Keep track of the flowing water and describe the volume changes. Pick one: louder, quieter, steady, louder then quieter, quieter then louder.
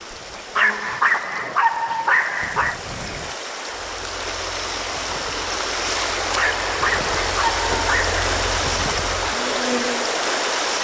louder.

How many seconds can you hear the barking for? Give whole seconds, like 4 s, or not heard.
4 s.